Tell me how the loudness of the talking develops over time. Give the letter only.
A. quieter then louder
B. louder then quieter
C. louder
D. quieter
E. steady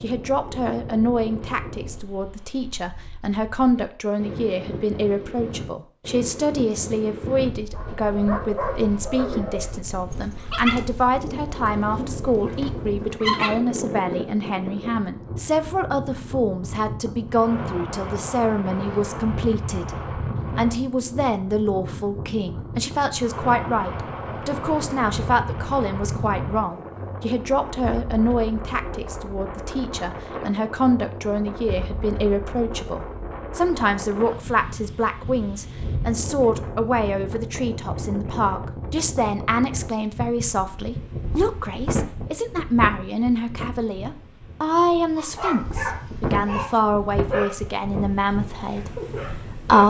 E.